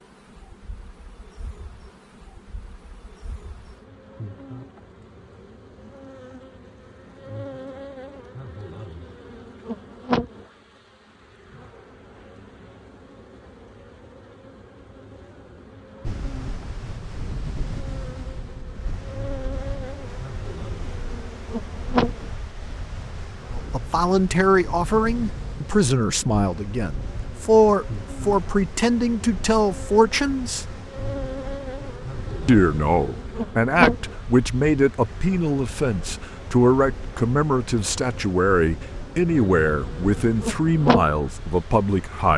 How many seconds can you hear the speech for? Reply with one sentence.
You can hear the speech for 17 seconds altogether.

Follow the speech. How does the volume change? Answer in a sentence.
The volume of the speech stays about the same.